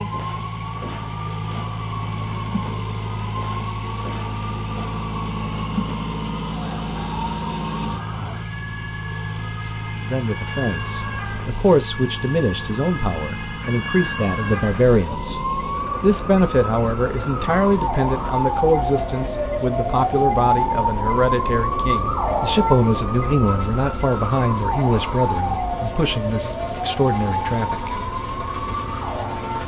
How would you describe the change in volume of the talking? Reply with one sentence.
The loudness of the talking stays about the same.